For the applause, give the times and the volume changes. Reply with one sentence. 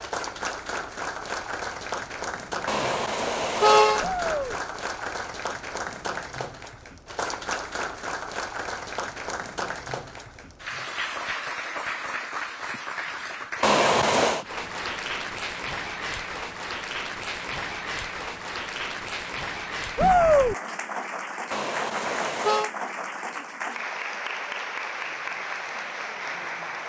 You can hear the applause from 0.0 to 26.8 s, at a steady volume.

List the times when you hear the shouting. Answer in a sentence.
The shouting can be heard from 4.0 to 4.6 s and from 19.9 to 20.6 s.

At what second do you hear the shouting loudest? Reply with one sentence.
The loudest moment of the shouting is at 20 seconds.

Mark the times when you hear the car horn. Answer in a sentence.
The car horn can be heard from 2.6 to 4.0 s, from 13.6 to 14.4 s and from 21.5 to 22.7 s.